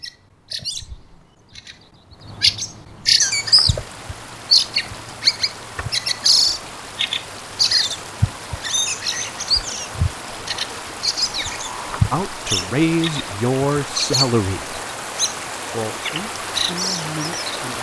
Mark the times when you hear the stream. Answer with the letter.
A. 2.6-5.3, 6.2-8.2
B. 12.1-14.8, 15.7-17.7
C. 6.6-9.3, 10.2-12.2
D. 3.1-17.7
D.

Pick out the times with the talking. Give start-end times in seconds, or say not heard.
12.1-14.8, 15.7-17.7.